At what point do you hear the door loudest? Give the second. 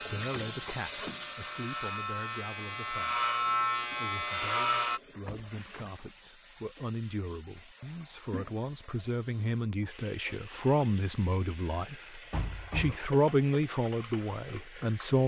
13 s.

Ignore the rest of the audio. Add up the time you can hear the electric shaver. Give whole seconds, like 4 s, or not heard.
5 s.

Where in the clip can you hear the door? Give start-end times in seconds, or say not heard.
0.1-1.2, 5.2-5.8, 12.3-13.0.